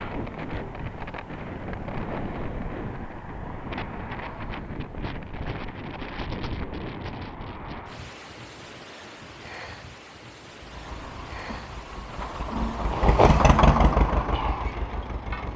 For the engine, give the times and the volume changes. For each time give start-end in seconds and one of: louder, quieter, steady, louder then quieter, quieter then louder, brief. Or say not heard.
10.6-15.5 louder then quieter.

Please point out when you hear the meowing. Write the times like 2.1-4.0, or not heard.
not heard.